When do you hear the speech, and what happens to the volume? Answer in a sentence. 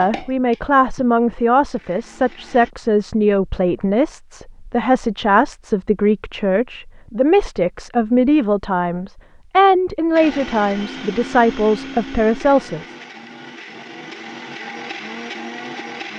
You can hear the speech from 0.0 to 12.9 s, at a steady volume.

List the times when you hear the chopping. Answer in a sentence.
The chopping can't be heard in this clip.